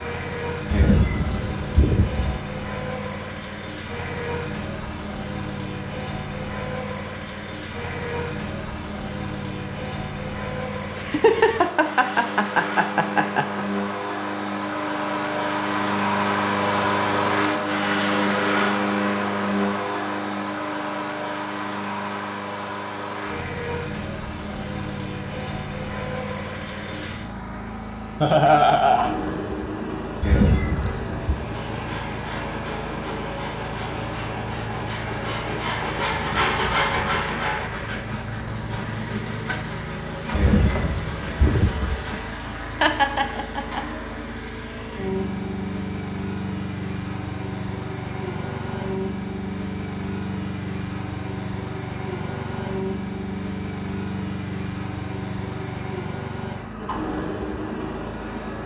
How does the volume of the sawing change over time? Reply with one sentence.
The volume of the sawing goes up, then down.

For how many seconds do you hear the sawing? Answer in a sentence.
You can hear the sawing for 11 seconds altogether.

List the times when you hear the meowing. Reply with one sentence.
The meowing can be heard from 0.7 to 2.4 s, from 30.2 to 31.4 s and from 40.3 to 42.0 s.